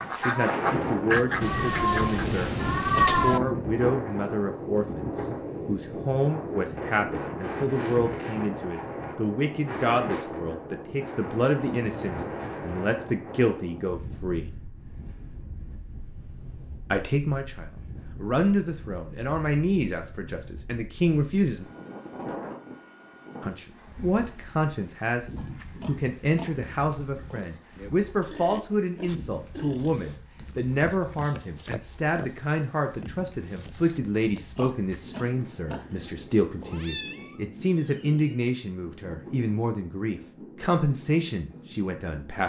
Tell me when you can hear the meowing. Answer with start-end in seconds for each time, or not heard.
1.4-3.4, 36.7-38.4.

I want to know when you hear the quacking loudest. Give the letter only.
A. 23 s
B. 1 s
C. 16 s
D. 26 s
B.